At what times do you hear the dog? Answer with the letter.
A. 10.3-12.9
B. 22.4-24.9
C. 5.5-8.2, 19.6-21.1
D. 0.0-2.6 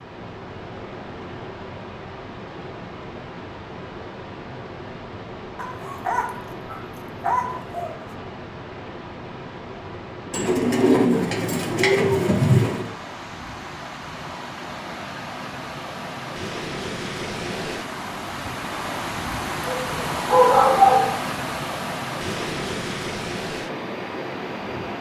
C.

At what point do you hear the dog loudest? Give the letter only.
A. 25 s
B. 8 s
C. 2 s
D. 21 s
D.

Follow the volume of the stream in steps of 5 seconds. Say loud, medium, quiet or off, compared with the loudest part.
medium, medium, medium, loud, loud.